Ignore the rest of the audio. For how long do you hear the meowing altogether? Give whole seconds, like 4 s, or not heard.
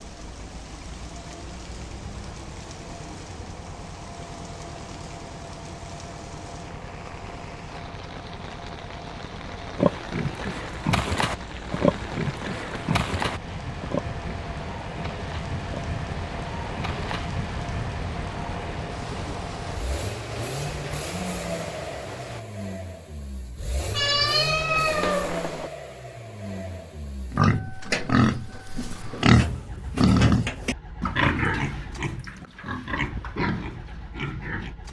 2 s.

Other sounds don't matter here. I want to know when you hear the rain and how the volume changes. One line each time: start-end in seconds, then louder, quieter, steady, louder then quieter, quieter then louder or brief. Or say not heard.
0.0-22.4 louder.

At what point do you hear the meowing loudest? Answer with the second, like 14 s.
24 s.